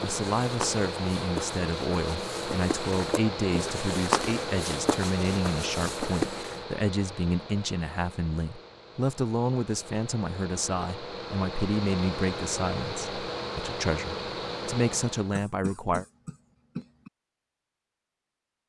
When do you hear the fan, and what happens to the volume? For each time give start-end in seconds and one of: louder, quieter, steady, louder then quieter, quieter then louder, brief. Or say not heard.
0.0-15.3 quieter then louder.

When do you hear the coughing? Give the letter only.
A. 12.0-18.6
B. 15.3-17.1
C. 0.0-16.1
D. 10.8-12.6
B.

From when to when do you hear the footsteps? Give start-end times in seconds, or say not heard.
0.0-6.6.